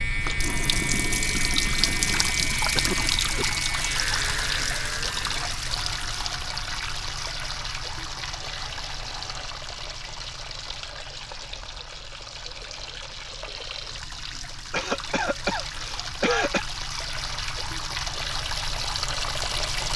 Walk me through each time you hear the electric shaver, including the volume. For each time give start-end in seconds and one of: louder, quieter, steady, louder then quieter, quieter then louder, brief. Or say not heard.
0.0-9.5 quieter.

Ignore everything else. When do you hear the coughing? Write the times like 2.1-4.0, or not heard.
2.8-3.5, 14.7-16.6.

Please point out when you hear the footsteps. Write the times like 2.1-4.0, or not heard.
not heard.